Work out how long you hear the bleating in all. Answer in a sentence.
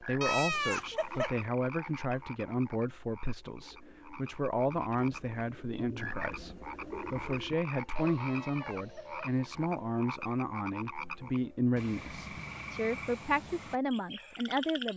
The bleating can be heard for 2 seconds in total.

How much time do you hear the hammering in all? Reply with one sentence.
You can't hear the hammering here.